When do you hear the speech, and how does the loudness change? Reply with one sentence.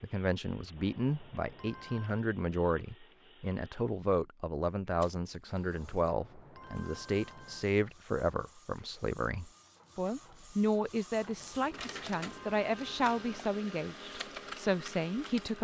The speech can be heard from 0.0 to 15.5 s, at a steady volume.